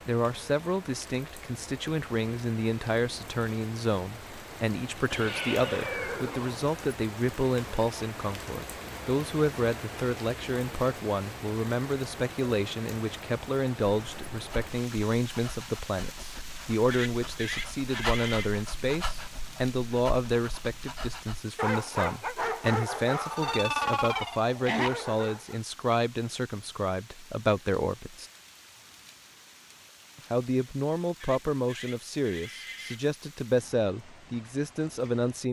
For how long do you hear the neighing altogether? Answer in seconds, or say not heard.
5 s.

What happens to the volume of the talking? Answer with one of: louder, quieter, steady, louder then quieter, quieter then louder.
steady.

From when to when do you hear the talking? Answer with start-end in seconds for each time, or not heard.
0.1-28.2, 30.1-35.4.